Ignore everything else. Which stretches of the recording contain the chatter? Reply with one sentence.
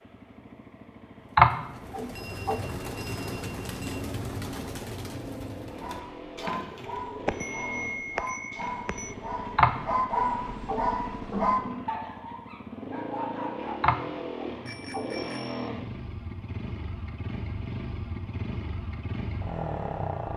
You can't hear the chatter here.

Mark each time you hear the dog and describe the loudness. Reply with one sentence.
You can hear the dog from 5.8 to 13.8 s, getting louder then quieter.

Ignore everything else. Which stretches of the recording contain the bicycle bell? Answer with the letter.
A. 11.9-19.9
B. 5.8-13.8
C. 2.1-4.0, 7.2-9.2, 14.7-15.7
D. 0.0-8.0
C.